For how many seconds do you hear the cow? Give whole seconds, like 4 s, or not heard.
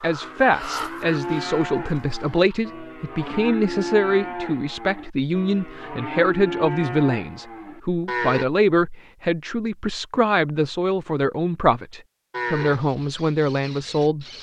10 s.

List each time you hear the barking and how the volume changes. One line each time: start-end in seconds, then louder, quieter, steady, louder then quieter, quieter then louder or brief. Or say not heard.
not heard.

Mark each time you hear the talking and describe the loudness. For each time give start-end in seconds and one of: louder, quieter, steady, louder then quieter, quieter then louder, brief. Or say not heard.
0.0-14.2 steady.